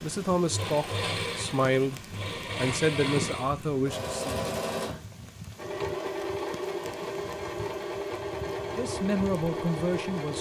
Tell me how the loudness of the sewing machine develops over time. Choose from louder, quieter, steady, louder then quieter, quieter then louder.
steady.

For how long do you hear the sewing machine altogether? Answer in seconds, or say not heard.
10 s.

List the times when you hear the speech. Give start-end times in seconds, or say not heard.
0.0-4.4, 8.7-10.3.